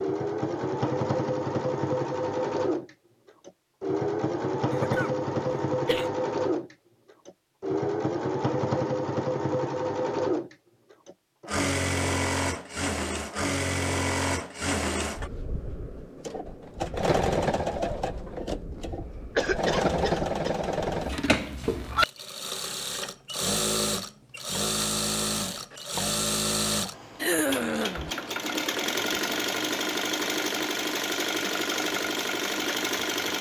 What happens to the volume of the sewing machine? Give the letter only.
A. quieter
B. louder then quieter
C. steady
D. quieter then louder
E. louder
C.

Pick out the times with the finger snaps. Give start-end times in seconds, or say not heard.
not heard.